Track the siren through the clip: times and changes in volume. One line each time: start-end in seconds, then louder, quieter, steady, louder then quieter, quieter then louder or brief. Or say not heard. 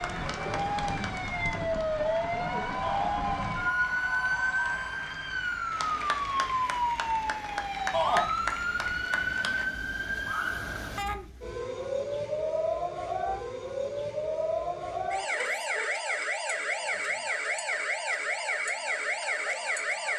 0.0-20.1 steady.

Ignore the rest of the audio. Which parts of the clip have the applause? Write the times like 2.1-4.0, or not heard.
0.0-9.7.